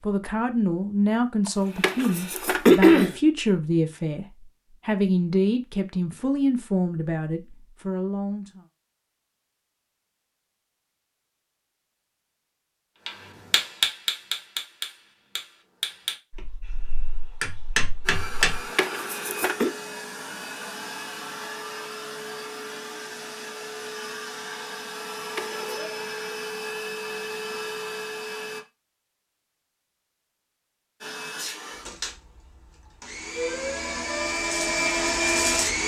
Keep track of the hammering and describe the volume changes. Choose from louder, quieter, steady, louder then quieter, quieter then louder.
quieter then louder.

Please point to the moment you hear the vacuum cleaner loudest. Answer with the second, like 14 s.
35 s.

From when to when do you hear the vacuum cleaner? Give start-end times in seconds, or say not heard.
18.1-28.6, 31.0-35.8.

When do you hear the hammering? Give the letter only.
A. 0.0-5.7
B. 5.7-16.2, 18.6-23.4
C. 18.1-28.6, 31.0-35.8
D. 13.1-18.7
D.